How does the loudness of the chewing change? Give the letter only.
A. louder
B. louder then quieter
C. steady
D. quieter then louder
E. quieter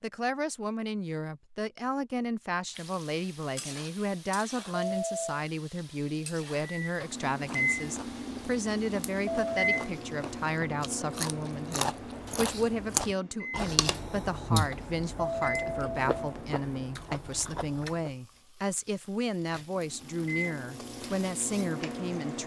B.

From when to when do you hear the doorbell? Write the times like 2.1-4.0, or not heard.
4.8-5.5, 9.2-9.9, 15.2-16.1.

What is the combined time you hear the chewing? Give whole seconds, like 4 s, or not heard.
11 s.